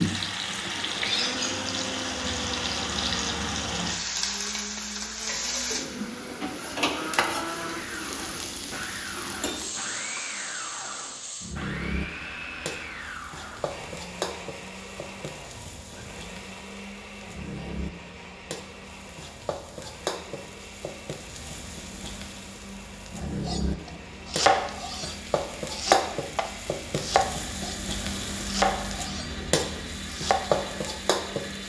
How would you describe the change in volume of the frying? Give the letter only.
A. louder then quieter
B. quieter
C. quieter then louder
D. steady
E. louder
C.